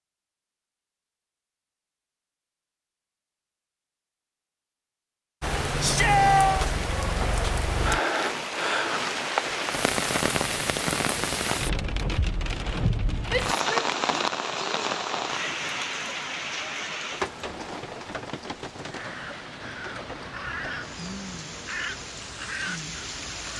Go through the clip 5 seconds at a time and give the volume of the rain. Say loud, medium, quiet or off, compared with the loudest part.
off, loud, loud, medium, medium.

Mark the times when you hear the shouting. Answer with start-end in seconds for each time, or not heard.
5.8-6.7, 13.3-14.2.